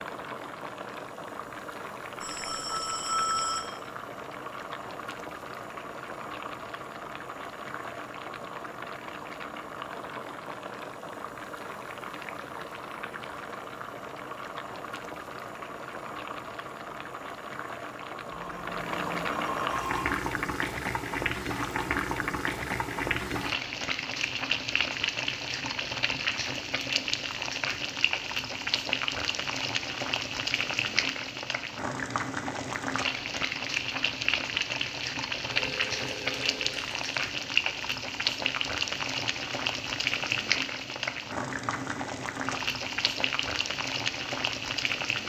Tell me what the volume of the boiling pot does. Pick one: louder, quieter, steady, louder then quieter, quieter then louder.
louder.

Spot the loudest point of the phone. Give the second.
3 s.